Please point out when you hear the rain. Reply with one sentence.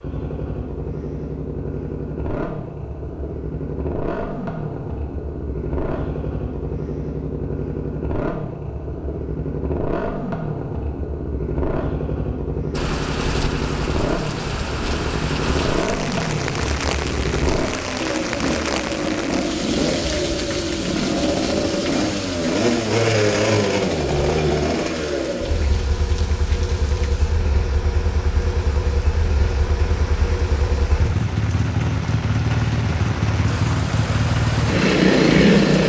The rain can be heard from 12.7 to 35.8 s.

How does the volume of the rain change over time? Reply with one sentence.
The volume of the rain goes down, then up.